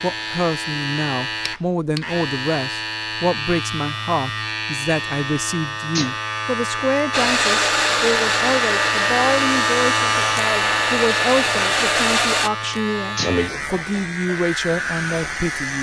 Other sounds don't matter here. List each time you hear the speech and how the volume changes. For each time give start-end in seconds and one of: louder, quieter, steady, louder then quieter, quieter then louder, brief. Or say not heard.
0.0-15.7 steady.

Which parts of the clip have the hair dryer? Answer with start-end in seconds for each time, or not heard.
7.1-12.5.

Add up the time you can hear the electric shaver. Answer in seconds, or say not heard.
16 s.